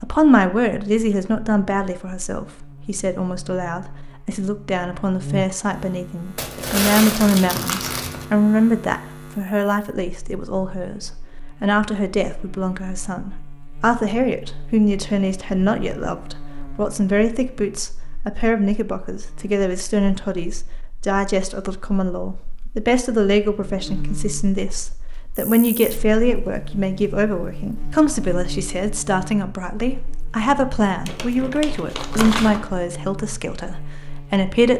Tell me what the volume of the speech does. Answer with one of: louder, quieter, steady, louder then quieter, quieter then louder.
steady.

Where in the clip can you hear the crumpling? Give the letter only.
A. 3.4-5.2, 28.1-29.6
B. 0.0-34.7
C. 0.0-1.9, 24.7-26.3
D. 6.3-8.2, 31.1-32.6
D.